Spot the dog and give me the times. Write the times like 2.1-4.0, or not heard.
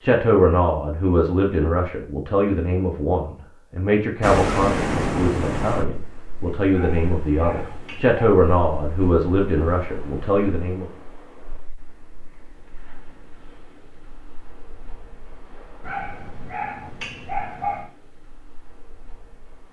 6.7-8.2, 15.8-17.9.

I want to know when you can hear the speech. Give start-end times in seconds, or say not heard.
0.0-10.8.